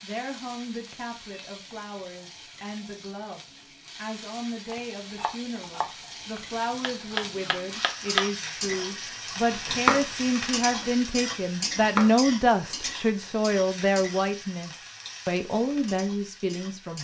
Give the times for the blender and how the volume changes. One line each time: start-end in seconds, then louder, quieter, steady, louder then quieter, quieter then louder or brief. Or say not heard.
not heard.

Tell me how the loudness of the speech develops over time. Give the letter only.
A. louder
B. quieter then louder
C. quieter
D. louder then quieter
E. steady
A.